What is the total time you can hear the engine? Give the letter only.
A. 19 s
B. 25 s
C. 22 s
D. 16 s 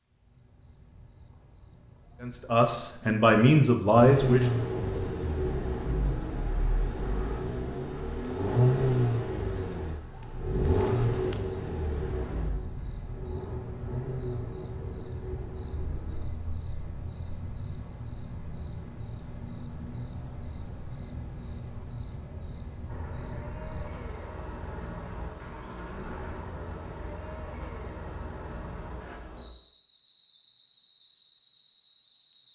A.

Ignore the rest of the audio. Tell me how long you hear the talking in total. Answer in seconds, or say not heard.
2 s.